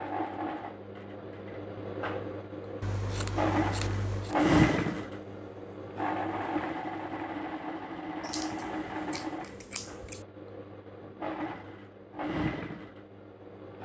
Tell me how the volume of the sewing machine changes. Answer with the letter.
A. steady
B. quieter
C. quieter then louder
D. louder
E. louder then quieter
E.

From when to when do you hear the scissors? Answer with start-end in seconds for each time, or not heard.
2.8-4.3, 8.2-10.2.